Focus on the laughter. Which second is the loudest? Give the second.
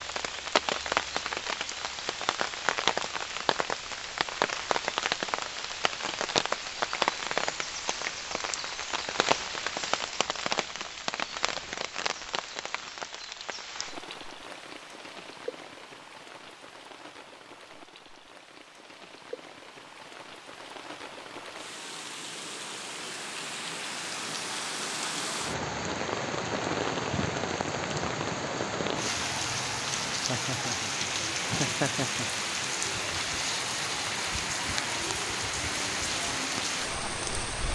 32 s.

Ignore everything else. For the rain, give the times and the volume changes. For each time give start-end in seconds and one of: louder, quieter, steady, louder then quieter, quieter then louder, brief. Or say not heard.
0.0-37.7 quieter then louder.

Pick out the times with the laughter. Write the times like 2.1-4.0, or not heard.
30.2-32.3.